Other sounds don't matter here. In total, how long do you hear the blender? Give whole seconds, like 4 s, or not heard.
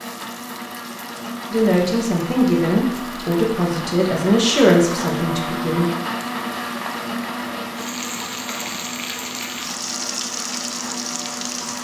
12 s.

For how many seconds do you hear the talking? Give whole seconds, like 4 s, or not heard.
4 s.